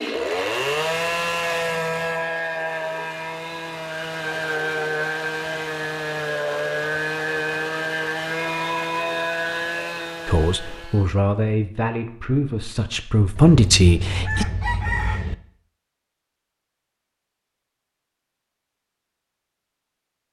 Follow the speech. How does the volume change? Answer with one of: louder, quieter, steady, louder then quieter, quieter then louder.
louder.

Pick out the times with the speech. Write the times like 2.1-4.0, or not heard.
10.2-14.4.